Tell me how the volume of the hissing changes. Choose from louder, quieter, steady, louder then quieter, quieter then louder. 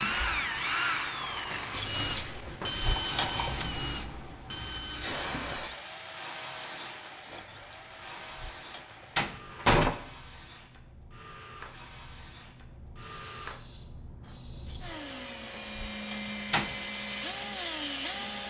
quieter.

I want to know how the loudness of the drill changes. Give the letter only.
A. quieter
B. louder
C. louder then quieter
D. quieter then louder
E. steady
D.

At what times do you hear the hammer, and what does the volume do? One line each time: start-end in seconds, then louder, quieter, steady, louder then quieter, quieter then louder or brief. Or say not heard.
not heard.